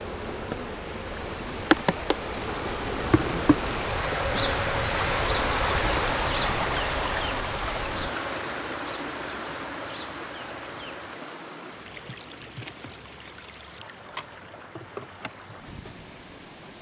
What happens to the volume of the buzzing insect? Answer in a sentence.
The volume of the buzzing insect goes down.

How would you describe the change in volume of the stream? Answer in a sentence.
The volume of the stream goes up, then down.